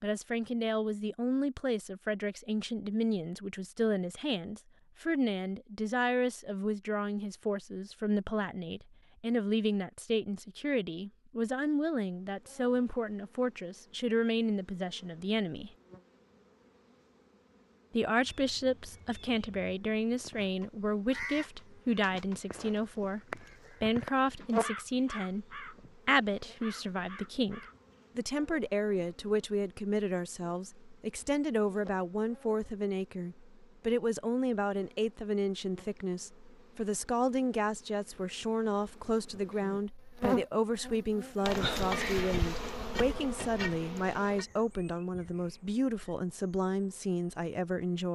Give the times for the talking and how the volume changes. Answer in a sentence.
The talking can be heard from 0.0 to 15.7 s, at a steady volume; and from 17.9 to 48.1 s, at a steady volume.